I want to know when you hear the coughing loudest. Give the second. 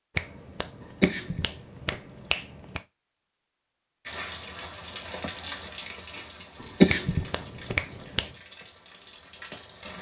7 s.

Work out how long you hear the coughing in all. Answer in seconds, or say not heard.
2 s.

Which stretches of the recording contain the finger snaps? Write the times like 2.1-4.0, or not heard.
0.1-2.8, 6.8-8.3.